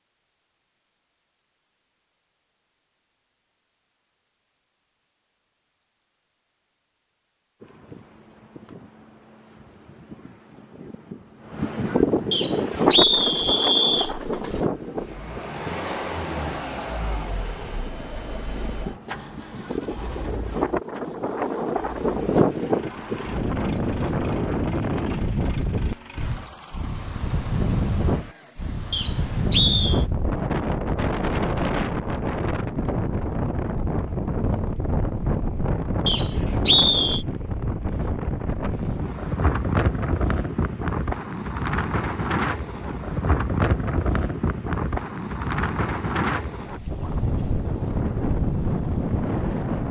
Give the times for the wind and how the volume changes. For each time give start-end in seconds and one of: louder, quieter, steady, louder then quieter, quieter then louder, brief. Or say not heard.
7.6-49.8 steady.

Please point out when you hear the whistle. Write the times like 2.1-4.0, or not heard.
12.3-14.1, 28.9-30.1, 36.0-37.2.